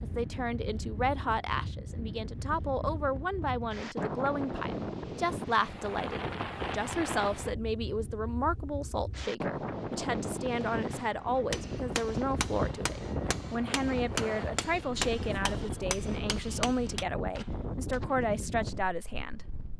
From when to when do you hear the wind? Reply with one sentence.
The wind can be heard from 0.0 to 19.7 s.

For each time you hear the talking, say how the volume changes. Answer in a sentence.
The talking can be heard from 0.0 to 19.4 s, at a steady volume.